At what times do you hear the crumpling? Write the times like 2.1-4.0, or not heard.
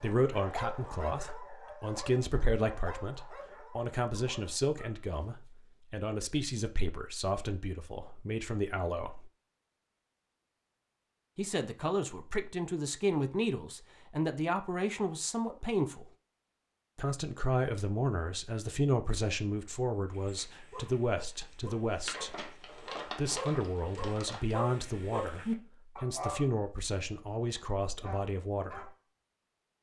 22.0-24.6.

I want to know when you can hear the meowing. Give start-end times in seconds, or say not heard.
not heard.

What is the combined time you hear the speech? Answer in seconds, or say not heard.
25 s.